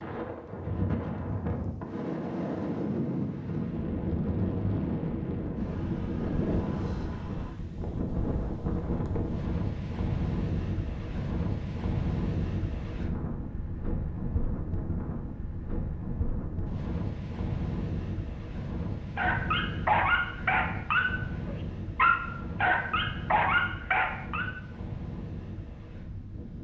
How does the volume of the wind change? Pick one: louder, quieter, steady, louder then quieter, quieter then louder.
quieter.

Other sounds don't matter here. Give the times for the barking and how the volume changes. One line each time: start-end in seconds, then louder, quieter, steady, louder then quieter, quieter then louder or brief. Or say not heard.
19.1-24.6 steady.